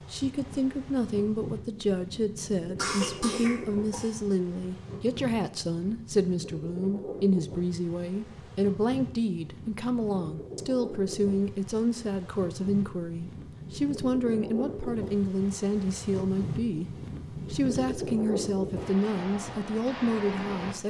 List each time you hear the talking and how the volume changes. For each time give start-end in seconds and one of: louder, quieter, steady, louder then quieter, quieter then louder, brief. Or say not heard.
0.1-20.8 steady.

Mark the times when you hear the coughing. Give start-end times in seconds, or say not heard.
2.8-4.2.